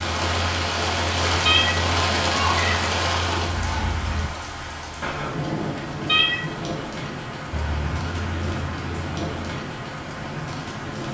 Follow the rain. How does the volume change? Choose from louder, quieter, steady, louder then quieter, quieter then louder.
quieter.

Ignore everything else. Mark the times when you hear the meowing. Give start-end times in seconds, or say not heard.
1.4-3.5, 6.0-6.5.